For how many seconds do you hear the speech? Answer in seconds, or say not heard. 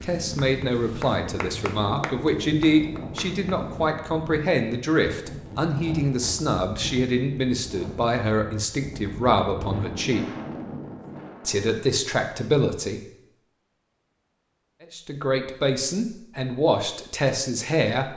15 s.